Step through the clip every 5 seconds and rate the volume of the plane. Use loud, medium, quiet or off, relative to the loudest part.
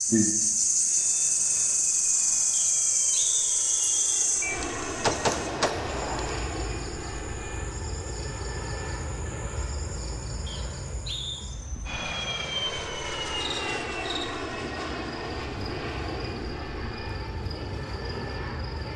medium, loud, loud, loud.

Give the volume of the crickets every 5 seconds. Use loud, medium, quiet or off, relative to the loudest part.
loud, quiet, quiet, quiet.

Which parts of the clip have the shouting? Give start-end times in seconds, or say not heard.
not heard.